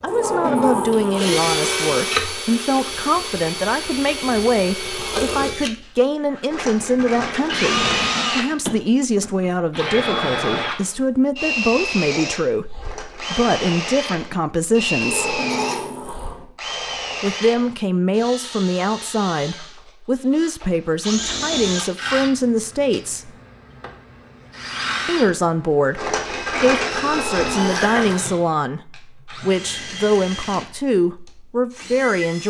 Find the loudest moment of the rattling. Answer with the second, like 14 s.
27 s.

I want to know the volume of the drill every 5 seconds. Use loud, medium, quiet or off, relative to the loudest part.
loud, loud, loud, medium, medium, medium, medium.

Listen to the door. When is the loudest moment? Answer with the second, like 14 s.
1 s.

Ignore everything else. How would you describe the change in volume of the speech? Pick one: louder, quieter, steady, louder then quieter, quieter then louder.
steady.